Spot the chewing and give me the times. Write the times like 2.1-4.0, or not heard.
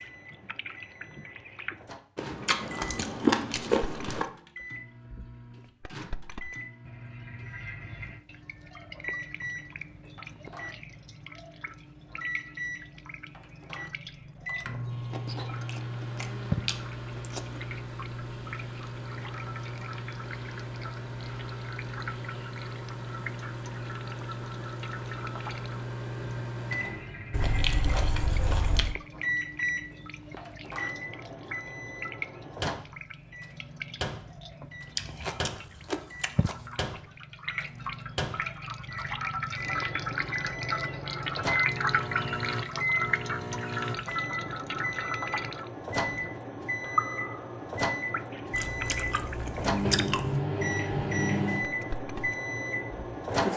2.1-4.3, 15.1-17.6, 27.3-28.9, 35.0-36.7, 48.5-50.4.